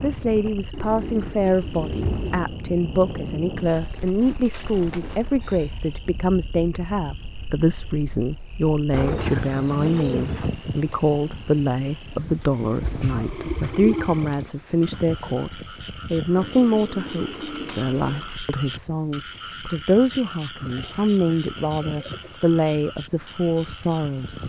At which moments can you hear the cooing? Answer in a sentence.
You can hear the cooing from 0.7 to 2.5 s, from 4.5 to 5.2 s, from 8.9 to 10.5 s, from 12.8 to 14.2 s, from 16.4 to 18.3 s and from 20.7 to 22.4 s.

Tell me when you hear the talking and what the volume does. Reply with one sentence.
You can hear the talking from 0.0 to 24.4 s, at a steady volume.